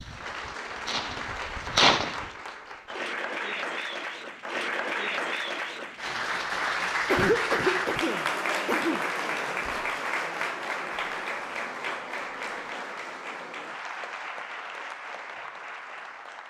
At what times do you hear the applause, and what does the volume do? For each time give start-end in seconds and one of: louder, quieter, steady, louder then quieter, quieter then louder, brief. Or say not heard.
0.0-16.4 louder then quieter.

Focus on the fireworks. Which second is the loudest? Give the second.
2 s.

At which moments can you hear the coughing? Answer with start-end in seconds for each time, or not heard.
7.0-9.1.